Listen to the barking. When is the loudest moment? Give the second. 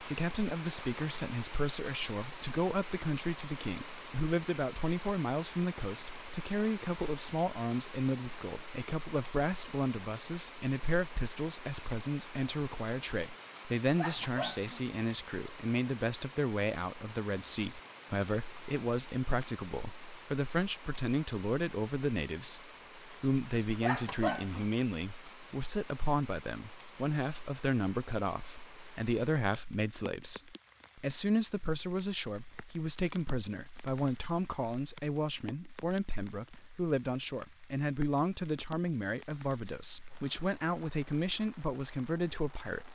24 s.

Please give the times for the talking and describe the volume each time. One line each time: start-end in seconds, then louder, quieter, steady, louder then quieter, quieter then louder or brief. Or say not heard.
0.0-42.9 steady.